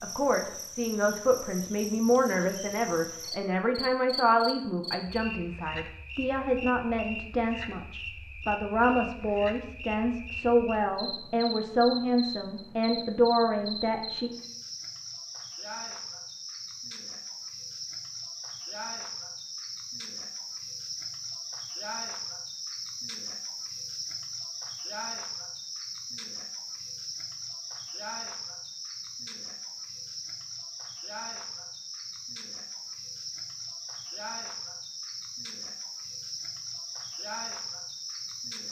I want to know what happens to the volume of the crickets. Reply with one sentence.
The loudness of the crickets stays about the same.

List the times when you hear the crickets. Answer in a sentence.
You can hear the crickets from 0.0 to 38.6 s.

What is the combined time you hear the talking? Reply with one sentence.
You can hear the talking for 14 seconds altogether.